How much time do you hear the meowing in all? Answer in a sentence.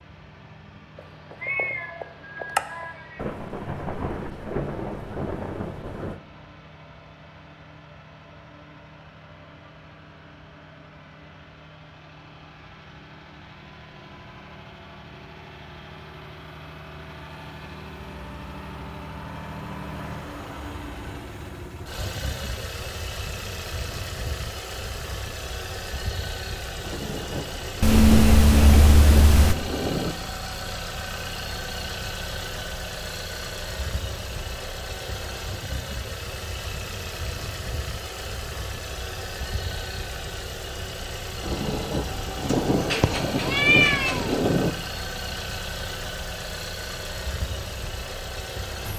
You can hear the meowing for 5 seconds altogether.